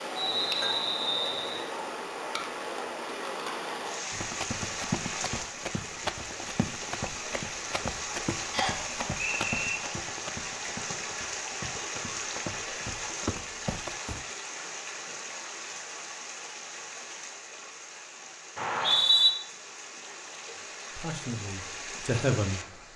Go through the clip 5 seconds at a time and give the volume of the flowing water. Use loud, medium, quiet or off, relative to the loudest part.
loud, loud, loud, medium, medium.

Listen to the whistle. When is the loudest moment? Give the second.
19 s.